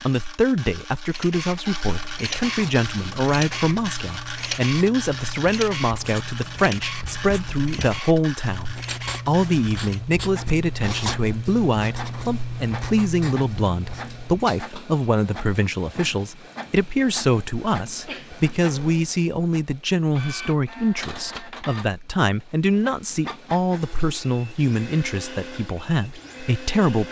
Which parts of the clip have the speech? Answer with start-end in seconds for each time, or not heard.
0.0-27.0.